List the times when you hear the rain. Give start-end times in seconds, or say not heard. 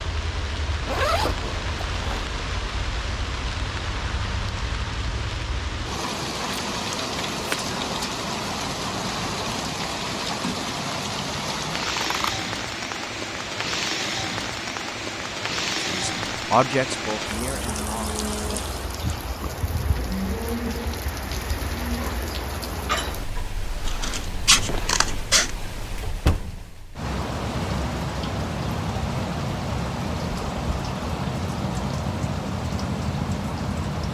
0.0-34.0.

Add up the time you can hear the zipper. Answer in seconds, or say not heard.
3 s.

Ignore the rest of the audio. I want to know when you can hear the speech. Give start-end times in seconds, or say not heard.
15.7-18.1.